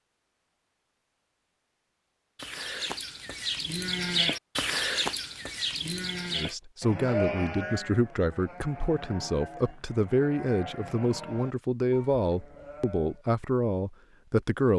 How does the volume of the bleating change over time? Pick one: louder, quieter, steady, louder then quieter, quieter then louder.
quieter.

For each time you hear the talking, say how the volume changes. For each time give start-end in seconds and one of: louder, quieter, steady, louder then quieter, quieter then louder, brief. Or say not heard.
6.3-14.7 steady.